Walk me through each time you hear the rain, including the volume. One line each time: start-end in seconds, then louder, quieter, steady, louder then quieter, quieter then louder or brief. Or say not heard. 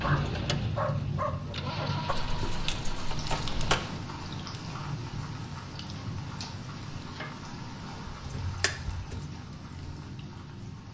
0.0-10.8 quieter.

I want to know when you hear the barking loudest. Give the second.
1 s.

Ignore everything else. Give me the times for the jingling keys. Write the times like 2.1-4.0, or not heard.
2.1-3.8, 8.2-9.3.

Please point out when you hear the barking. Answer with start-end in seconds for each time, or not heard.
0.0-2.1.